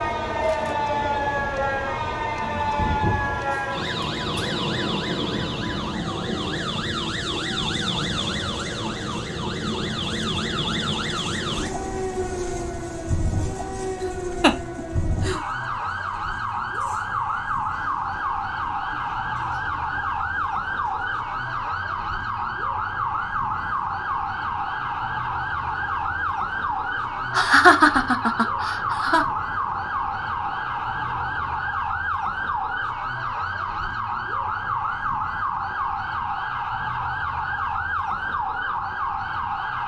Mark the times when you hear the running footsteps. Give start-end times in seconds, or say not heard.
not heard.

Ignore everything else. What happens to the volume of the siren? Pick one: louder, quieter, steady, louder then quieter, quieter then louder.
steady.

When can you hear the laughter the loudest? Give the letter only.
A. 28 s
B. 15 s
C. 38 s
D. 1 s
A.